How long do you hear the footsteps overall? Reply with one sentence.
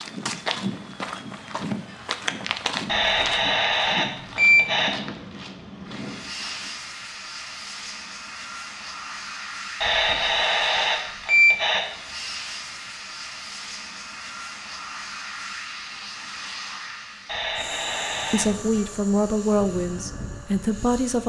You can hear the footsteps for 7 seconds altogether.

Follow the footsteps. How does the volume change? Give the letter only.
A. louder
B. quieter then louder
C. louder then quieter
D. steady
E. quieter
E.